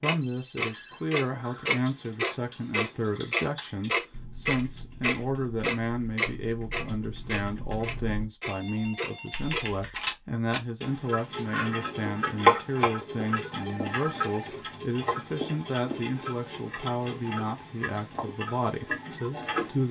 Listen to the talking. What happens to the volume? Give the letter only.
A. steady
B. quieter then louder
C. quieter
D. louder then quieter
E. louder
A.